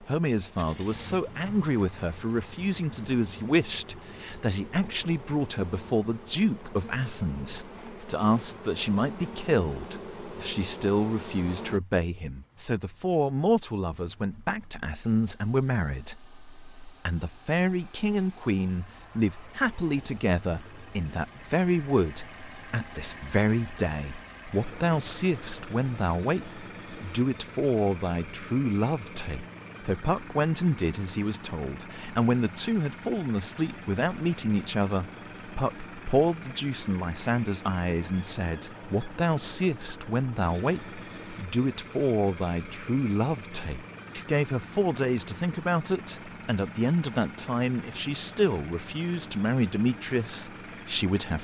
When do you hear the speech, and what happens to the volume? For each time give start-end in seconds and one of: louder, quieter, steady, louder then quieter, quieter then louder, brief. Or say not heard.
0.0-51.3 steady.